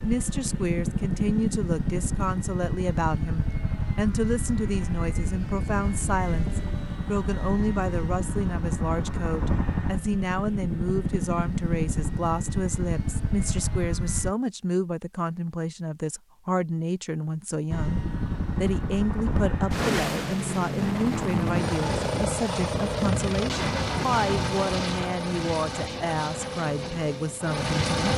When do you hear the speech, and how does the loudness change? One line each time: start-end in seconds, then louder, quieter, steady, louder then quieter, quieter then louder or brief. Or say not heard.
0.0-28.1 steady.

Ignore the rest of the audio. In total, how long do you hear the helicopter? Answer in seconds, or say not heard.
25 s.